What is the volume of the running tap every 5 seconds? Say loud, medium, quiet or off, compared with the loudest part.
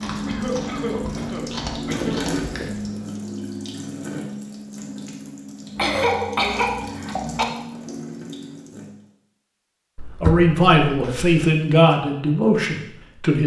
loud, medium, off.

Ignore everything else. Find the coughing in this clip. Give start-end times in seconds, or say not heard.
0.2-2.2, 5.8-7.5, 9.9-11.3.